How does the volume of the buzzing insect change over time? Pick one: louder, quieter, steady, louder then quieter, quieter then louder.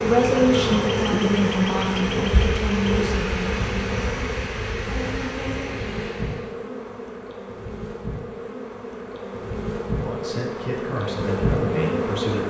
quieter then louder.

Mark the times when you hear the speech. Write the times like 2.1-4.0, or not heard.
0.0-4.0, 9.9-12.4.